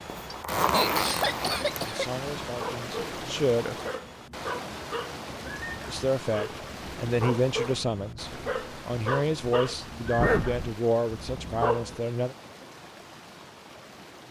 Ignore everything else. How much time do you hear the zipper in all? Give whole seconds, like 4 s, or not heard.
2 s.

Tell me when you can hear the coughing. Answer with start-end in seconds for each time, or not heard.
0.3-2.1.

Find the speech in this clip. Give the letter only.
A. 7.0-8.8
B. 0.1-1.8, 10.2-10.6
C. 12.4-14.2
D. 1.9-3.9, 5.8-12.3
D.